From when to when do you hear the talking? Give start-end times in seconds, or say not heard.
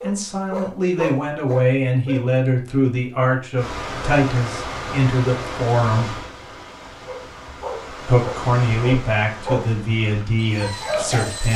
0.0-6.2, 8.1-11.5.